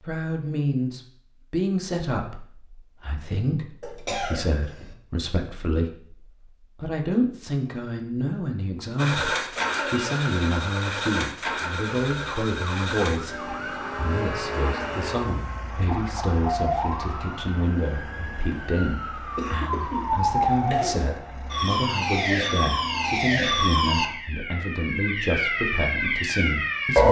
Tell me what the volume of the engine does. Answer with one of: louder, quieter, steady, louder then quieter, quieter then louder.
quieter.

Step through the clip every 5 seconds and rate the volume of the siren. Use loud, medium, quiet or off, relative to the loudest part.
off, off, quiet, medium, loud, loud.